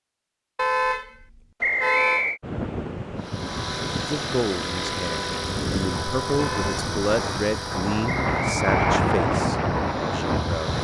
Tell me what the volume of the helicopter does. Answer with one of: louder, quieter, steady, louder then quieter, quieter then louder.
quieter.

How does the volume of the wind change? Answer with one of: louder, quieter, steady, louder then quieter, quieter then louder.
louder.